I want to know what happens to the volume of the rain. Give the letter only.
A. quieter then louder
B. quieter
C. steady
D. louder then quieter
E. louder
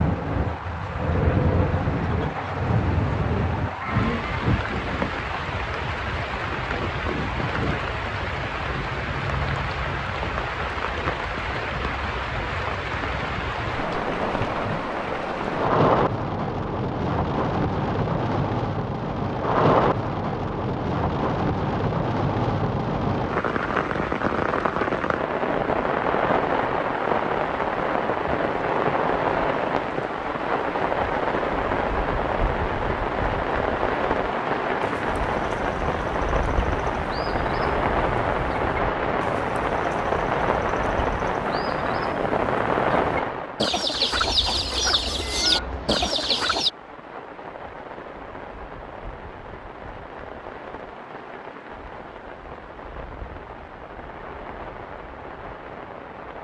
B.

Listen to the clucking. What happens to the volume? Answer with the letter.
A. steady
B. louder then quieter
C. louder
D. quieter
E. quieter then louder
C.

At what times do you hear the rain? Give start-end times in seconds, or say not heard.
0.0-56.3.